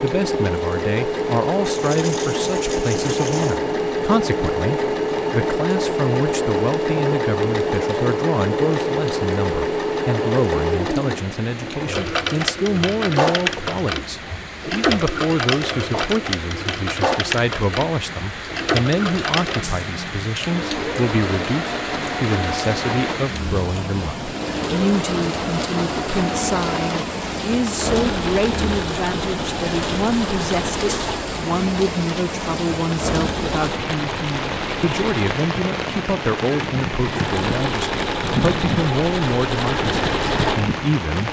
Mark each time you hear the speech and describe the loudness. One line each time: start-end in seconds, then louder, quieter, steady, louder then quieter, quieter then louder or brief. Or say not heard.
0.0-41.2 steady.